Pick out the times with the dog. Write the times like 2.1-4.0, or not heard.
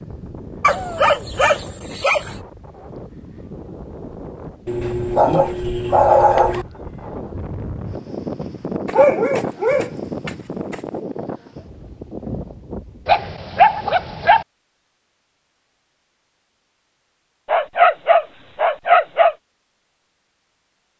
0.6-2.3, 4.7-6.7, 8.8-10.8, 13.1-14.4, 17.4-19.4.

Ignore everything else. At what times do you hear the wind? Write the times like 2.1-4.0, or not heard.
0.0-13.2.